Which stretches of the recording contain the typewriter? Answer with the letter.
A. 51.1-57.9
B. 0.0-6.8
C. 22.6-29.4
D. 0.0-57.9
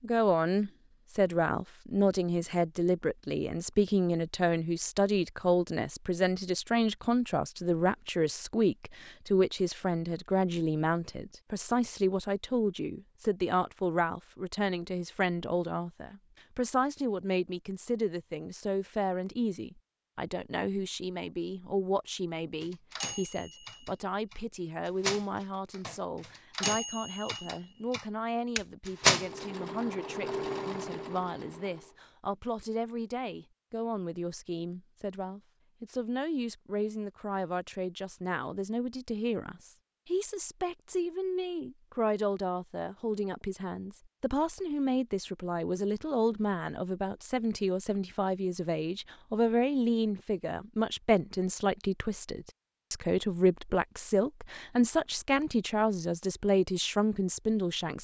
C.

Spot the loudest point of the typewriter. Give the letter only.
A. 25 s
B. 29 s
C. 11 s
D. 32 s
B.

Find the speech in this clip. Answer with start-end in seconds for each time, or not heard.
0.0-57.9.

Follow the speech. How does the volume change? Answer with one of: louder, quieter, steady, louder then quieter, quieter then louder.
quieter then louder.